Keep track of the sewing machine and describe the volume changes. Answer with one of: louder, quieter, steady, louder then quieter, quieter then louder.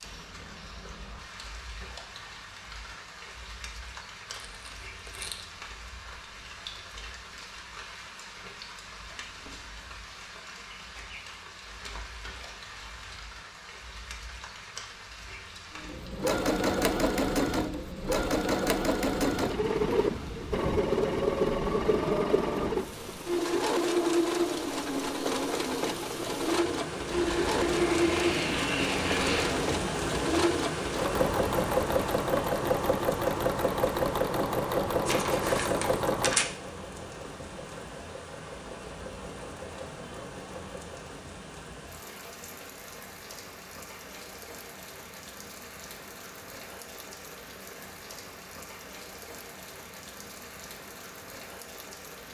quieter.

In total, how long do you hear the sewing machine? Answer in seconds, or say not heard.
25 s.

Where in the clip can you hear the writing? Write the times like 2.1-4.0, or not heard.
not heard.